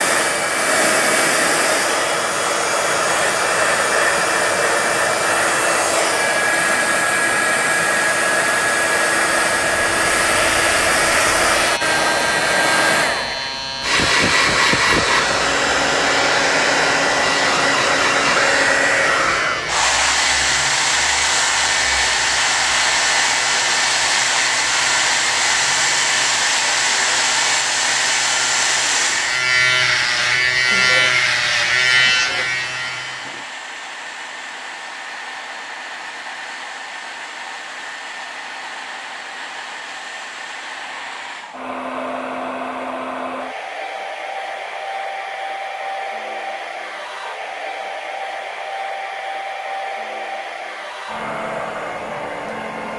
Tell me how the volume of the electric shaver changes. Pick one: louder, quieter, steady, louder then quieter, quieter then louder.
louder.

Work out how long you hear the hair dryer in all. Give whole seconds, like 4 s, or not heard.
53 s.